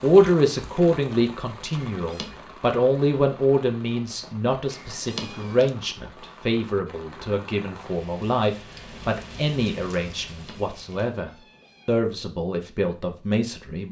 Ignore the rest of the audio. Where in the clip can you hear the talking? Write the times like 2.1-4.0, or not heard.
0.0-13.8.